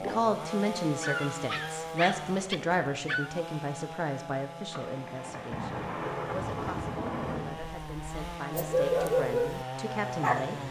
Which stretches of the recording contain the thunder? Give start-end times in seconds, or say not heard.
4.7-7.5.